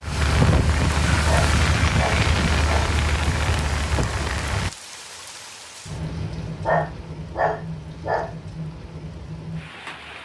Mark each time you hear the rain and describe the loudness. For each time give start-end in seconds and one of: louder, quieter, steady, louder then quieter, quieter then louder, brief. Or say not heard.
0.0-10.1 quieter.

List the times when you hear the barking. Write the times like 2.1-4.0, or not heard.
1.2-3.0, 6.6-8.3.